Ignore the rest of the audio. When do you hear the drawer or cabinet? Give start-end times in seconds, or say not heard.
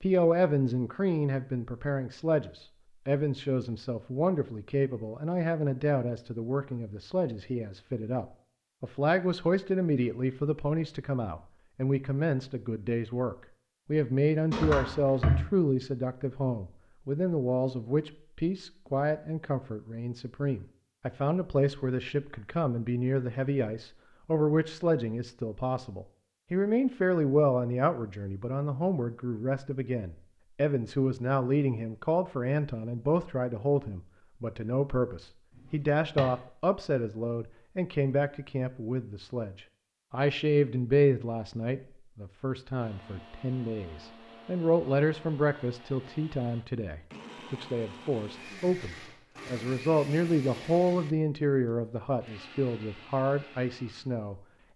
14.5-15.4, 35.7-36.2.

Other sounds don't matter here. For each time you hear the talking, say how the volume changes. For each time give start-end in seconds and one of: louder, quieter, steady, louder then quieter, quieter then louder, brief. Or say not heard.
0.0-54.4 steady.